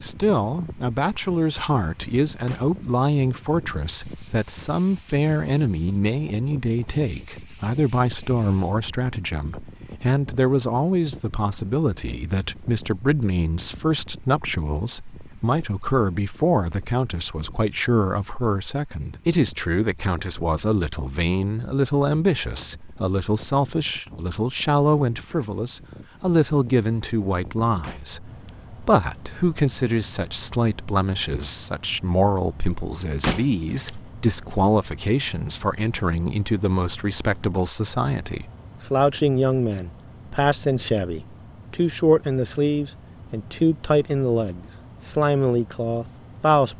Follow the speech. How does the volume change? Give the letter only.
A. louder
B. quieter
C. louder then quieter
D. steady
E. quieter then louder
D.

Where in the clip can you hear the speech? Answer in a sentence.
The speech can be heard from 0.0 to 46.7 s.